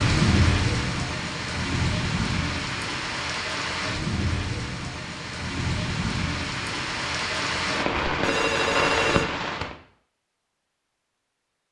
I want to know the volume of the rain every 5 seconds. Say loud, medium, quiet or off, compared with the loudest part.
loud, loud, off.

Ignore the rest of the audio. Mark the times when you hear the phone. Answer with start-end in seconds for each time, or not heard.
8.1-9.2.